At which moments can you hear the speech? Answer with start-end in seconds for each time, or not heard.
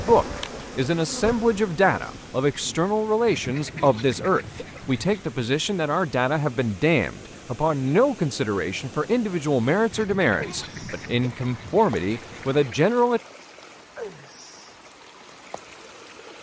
0.1-13.2.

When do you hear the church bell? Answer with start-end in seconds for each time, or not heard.
not heard.